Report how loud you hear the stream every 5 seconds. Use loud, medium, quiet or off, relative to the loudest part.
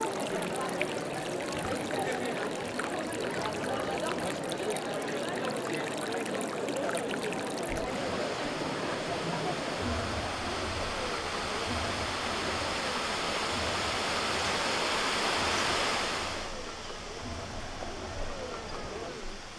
medium, medium, loud, loud.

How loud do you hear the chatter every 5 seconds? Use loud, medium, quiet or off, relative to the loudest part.
loud, loud, medium, medium.